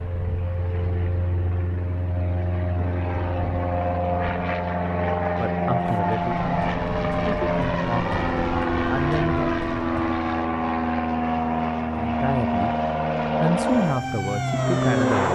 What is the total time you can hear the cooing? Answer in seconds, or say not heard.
not heard.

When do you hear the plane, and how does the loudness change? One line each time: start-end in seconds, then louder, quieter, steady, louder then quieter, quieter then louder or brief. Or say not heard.
0.0-15.2 louder.